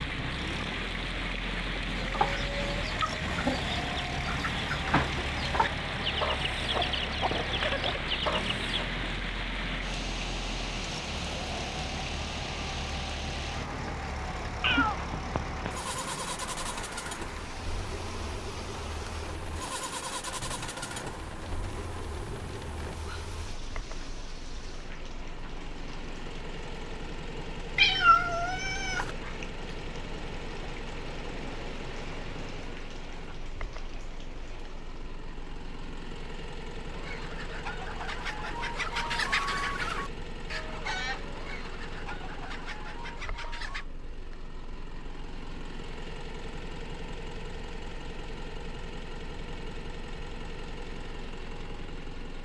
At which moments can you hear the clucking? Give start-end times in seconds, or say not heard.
1.9-8.8, 36.9-43.9.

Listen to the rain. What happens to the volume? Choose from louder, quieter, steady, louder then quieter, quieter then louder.
quieter.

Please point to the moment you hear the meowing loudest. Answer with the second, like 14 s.
28 s.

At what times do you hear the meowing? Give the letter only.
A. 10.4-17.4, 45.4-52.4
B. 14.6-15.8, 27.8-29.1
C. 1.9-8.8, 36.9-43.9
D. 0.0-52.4
B.